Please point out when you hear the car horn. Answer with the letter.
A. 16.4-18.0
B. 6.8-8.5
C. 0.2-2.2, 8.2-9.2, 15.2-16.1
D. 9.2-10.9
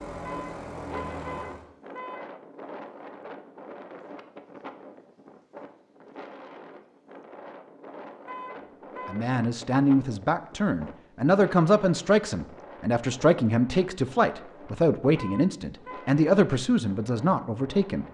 C.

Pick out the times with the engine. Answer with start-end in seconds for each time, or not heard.
0.0-1.7.